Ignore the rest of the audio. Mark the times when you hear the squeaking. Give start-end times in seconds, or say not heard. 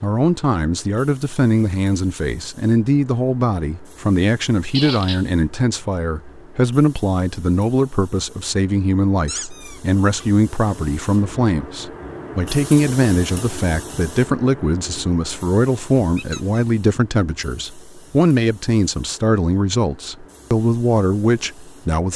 4.7-5.2, 9.2-10.2, 16.1-16.6.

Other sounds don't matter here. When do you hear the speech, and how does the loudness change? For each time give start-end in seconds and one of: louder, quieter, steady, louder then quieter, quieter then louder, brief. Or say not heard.
0.0-22.1 steady.